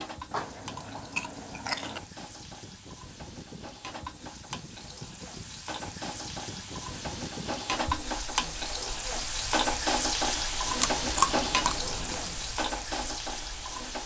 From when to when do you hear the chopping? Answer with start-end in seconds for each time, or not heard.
not heard.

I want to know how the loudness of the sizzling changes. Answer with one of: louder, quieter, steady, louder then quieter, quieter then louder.
louder.